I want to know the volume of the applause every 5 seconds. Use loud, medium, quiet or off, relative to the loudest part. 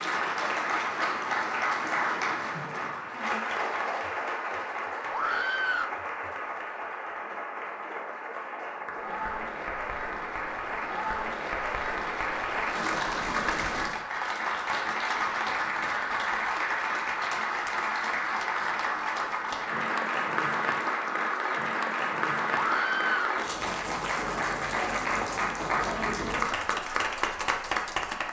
loud, medium, loud, loud, loud, loud.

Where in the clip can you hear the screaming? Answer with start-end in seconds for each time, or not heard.
5.1-6.0, 22.5-23.4.